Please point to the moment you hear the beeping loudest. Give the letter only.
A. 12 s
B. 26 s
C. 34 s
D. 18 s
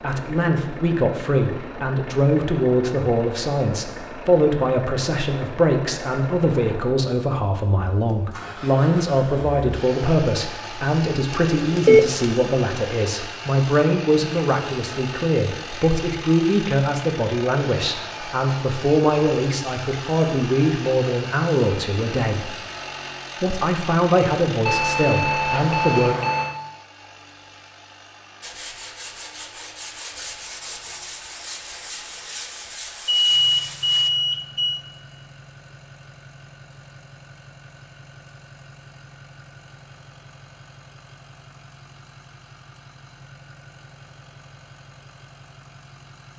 A.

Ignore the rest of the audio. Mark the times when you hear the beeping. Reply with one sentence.
The beeping can be heard from 11.3 to 12.3 s, from 24.6 to 26.6 s and from 33.0 to 34.9 s.